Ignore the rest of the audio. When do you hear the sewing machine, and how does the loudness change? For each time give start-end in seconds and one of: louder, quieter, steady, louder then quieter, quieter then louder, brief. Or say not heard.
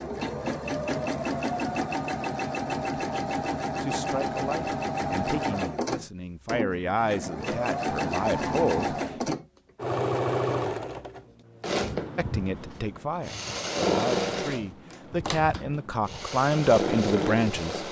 0.0-17.8 steady.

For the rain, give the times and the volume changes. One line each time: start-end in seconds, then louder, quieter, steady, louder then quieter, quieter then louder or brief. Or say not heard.
not heard.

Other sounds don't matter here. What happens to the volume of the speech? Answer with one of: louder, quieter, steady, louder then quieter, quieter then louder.
louder.